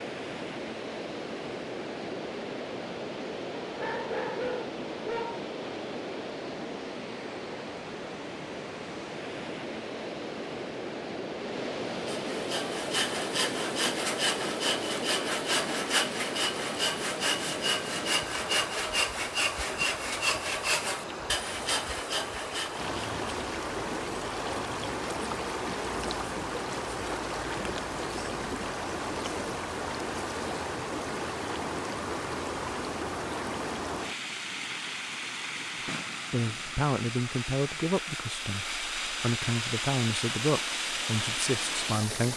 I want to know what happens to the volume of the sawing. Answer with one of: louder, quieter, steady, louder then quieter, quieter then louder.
steady.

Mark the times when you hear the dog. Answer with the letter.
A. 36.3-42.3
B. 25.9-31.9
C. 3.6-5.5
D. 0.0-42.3
C.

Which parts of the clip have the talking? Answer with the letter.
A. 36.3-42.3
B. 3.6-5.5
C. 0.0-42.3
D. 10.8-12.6
A.